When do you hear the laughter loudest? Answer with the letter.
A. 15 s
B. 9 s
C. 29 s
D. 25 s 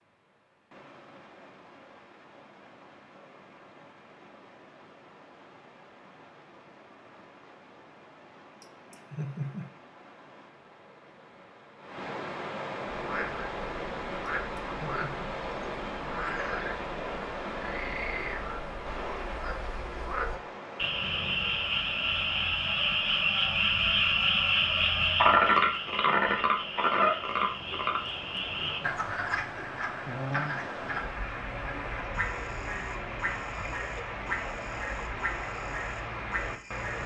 B.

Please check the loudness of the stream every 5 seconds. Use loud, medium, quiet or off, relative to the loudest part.
quiet, quiet, loud, loud, medium, medium, loud, loud.